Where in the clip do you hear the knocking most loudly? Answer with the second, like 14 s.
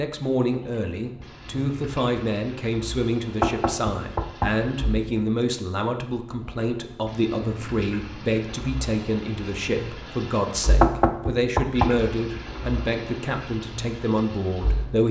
11 s.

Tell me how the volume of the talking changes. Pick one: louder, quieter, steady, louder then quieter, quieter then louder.
steady.